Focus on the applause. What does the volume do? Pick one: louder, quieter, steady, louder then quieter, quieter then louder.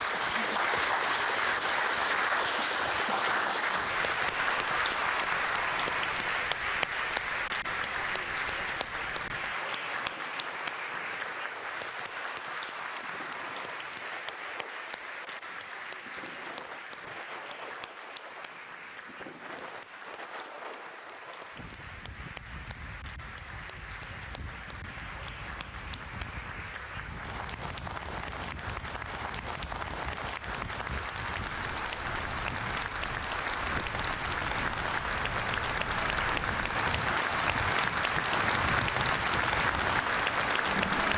quieter then louder.